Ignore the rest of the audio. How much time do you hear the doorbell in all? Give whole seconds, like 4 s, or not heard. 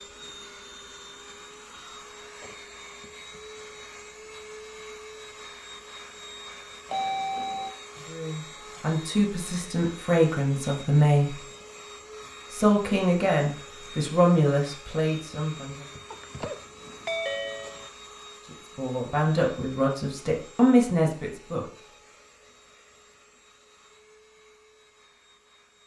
3 s.